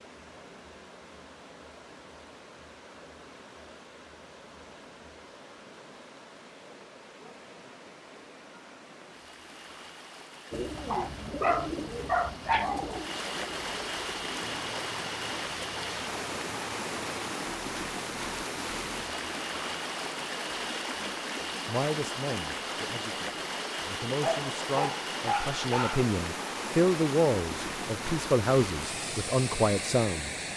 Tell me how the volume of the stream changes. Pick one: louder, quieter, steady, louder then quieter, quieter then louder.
louder.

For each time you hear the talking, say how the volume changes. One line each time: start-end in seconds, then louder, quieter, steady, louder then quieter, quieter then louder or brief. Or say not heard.
21.6-30.4 louder.